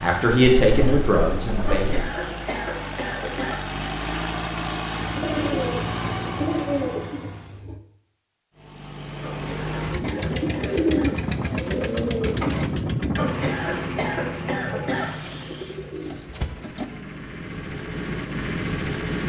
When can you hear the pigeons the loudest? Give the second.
11 s.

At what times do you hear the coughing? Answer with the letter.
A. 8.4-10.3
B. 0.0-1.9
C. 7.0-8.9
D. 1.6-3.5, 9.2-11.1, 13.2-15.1
D.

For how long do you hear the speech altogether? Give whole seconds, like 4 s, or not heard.
2 s.